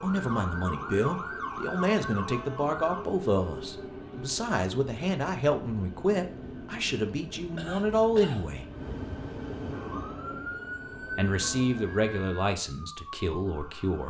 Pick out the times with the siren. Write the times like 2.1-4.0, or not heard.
0.0-3.1, 9.7-14.0.